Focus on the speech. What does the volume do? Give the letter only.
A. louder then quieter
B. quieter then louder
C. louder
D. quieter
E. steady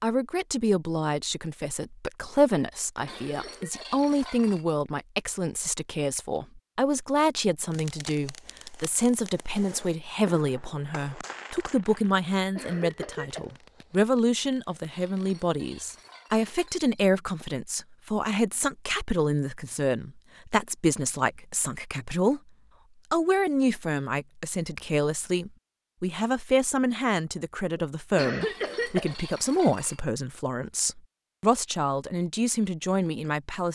E.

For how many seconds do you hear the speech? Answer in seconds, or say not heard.
33 s.